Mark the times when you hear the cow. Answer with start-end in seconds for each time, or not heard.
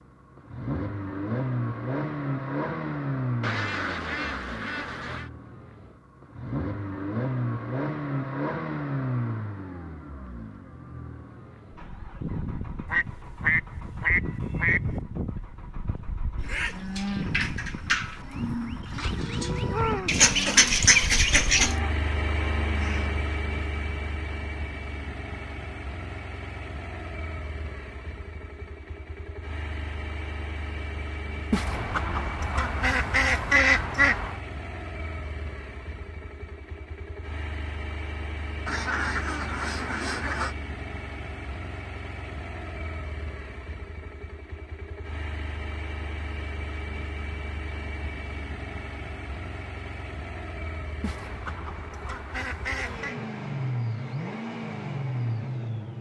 16.4-23.3.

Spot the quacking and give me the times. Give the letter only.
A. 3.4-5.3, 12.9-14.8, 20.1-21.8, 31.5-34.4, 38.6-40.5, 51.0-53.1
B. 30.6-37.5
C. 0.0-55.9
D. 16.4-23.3
A.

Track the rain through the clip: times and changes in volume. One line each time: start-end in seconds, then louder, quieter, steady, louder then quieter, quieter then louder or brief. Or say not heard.
not heard.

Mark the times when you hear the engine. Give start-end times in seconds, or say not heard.
0.0-55.9.